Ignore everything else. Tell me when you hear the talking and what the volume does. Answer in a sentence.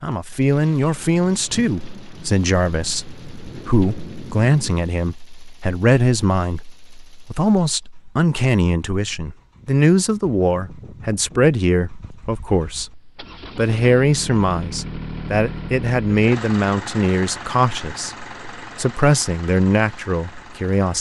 You can hear the talking from 0.0 to 20.9 s, at a steady volume.